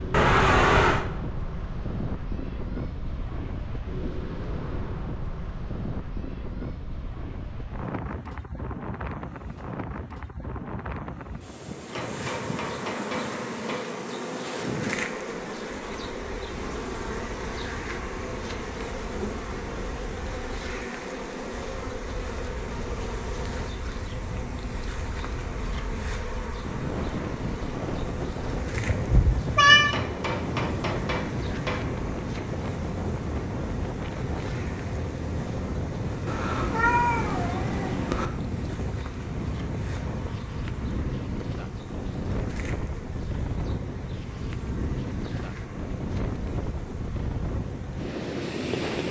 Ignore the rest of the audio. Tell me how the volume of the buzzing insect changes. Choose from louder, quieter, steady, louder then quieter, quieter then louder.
quieter.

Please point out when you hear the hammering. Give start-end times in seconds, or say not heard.
11.9-13.8, 29.9-31.8.